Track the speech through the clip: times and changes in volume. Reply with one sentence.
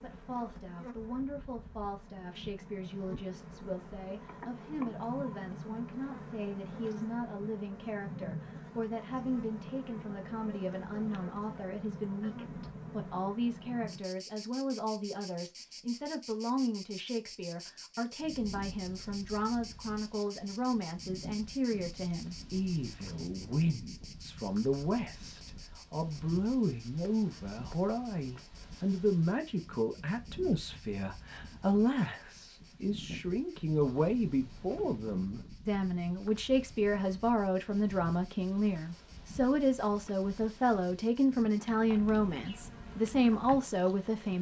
You can hear the speech from 0.0 to 44.3 s, getting louder.